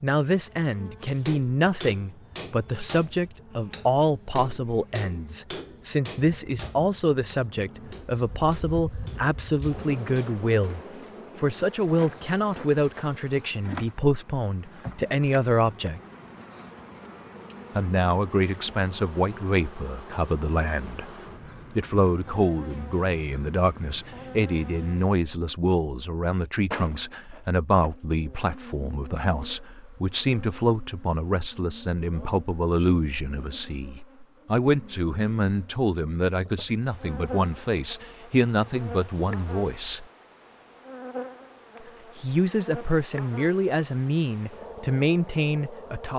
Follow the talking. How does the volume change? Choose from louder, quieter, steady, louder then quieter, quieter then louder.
steady.